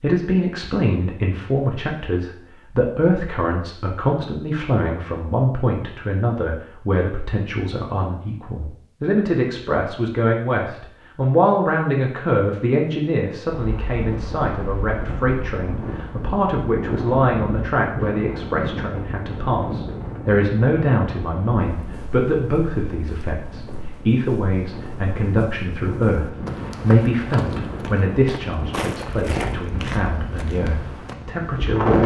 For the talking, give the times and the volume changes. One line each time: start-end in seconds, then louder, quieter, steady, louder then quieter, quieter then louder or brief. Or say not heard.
0.0-32.0 steady.